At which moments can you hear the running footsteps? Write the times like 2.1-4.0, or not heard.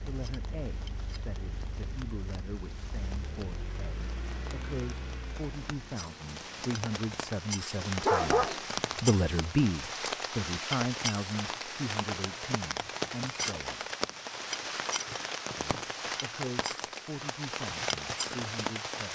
not heard.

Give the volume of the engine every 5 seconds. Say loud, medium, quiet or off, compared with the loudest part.
loud, loud, off, off.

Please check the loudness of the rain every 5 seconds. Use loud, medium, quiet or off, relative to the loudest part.
quiet, loud, loud, loud.